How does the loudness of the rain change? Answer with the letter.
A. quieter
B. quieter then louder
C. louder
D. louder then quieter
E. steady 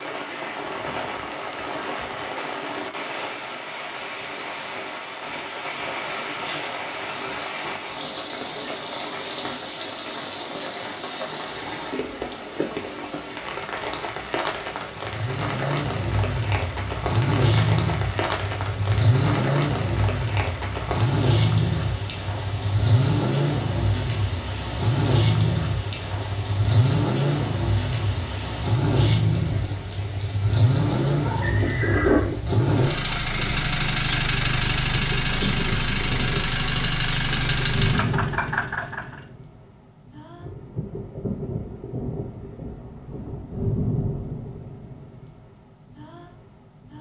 E.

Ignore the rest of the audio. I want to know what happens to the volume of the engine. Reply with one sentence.
The volume of the engine stays about the same.